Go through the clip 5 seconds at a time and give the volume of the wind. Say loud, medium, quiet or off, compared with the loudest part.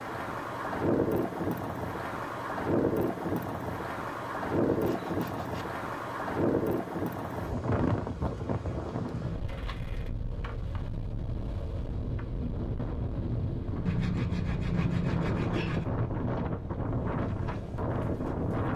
loud, loud, medium, loud.